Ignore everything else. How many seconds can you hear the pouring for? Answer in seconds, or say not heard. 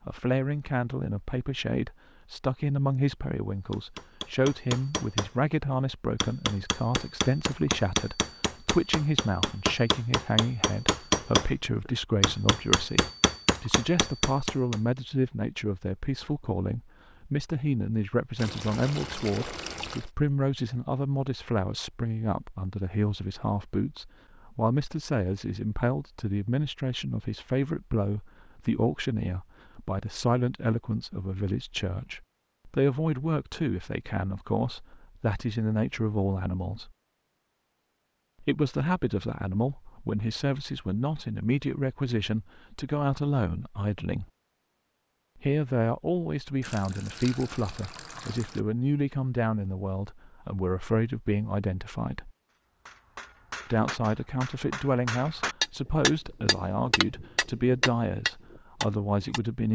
4 s.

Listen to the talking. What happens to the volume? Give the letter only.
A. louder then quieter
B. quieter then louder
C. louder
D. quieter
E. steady
E.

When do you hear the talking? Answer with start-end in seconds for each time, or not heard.
0.1-36.9, 38.4-44.2, 45.4-52.3, 53.7-59.7.